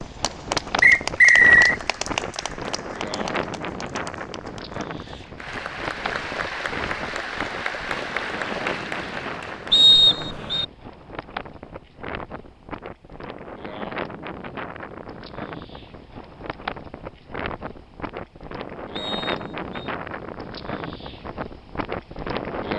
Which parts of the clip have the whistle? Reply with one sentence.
You can hear the whistle from 0.8 to 1.8 s, from 9.7 to 10.7 s and from 18.9 to 19.6 s.